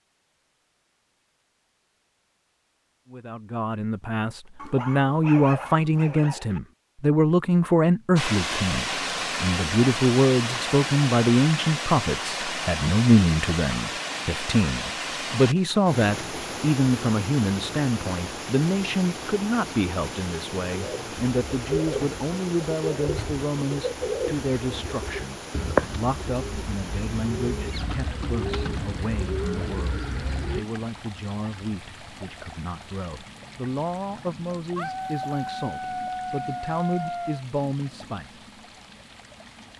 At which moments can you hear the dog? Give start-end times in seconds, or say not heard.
4.5-6.6, 34.8-37.5.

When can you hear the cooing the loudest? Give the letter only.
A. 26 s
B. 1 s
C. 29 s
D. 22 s
A.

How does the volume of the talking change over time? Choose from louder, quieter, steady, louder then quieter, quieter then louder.
quieter.